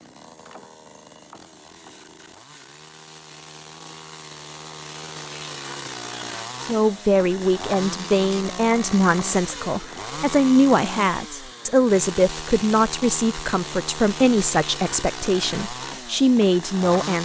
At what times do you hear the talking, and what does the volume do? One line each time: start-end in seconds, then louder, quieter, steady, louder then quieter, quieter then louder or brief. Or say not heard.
6.6-17.2 steady.